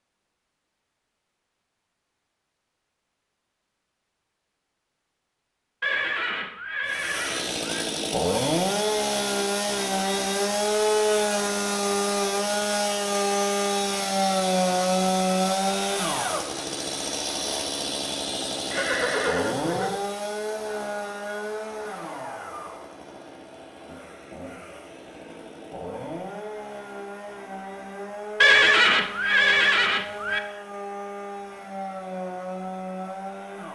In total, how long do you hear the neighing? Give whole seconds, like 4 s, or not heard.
5 s.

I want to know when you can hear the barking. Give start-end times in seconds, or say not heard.
not heard.